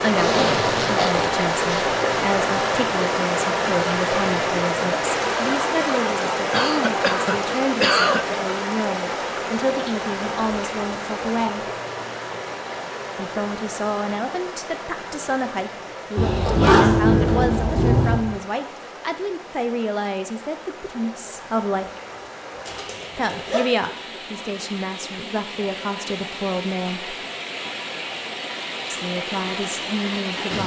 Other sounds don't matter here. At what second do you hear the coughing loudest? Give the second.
8 s.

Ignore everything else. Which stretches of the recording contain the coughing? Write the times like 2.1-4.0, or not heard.
6.5-8.4.